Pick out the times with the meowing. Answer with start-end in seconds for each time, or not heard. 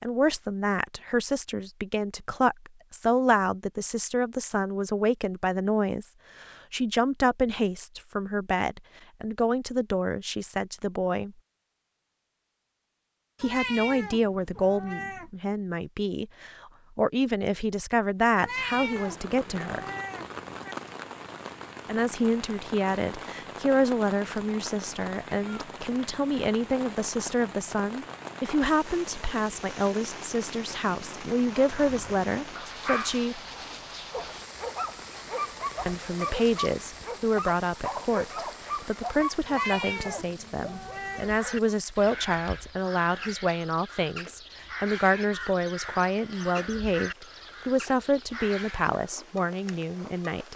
13.3-15.3, 18.4-20.8, 39.5-41.4.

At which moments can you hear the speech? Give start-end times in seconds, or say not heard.
0.0-11.3, 13.4-19.9, 21.9-33.4, 35.9-50.5.